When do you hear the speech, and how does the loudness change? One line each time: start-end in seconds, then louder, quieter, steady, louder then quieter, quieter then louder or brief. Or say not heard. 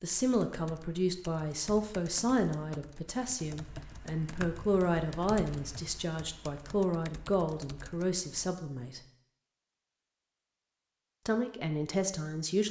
0.0-9.0 steady
11.2-12.6 brief.